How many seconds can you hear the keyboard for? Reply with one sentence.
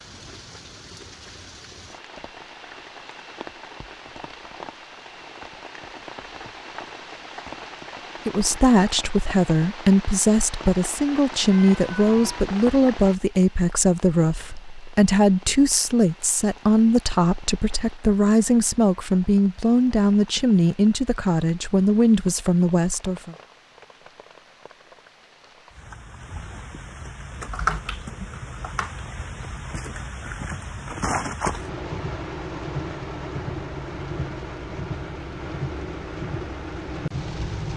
You can hear the keyboard for 2 seconds altogether.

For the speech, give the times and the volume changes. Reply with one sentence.
You can hear the speech from 8.2 to 23.4 s, at a steady volume.